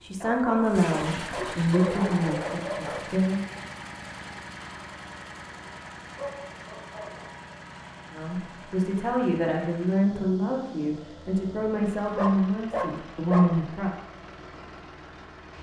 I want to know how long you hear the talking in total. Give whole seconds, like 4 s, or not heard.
9 s.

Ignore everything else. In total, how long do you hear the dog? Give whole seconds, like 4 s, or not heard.
5 s.